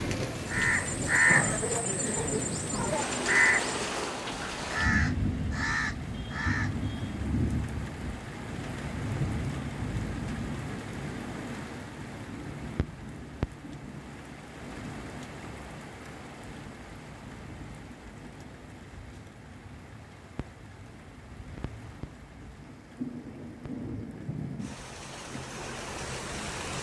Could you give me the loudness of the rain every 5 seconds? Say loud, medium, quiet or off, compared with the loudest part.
loud, loud, medium, quiet, medium, medium.